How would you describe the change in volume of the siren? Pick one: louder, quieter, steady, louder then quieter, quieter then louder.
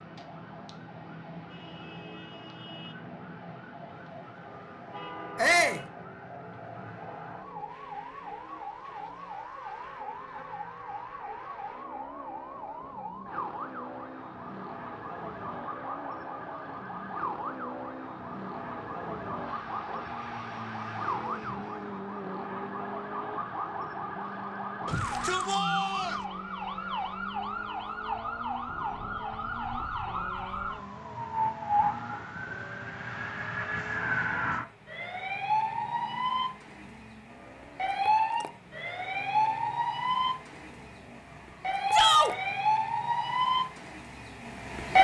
louder.